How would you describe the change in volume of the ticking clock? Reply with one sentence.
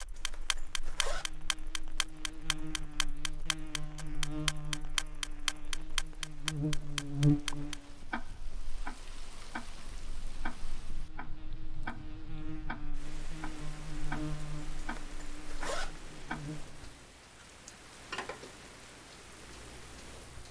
The loudness of the ticking clock goes down.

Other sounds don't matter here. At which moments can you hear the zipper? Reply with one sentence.
The zipper can be heard from 0.1 to 1.3 s and from 14.8 to 16.0 s.